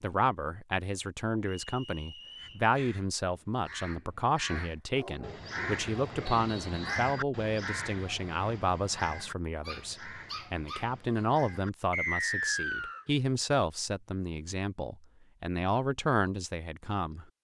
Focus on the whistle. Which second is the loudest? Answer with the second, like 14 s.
12 s.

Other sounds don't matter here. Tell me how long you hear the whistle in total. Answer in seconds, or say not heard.
3 s.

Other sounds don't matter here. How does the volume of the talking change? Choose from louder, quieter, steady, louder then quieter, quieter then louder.
steady.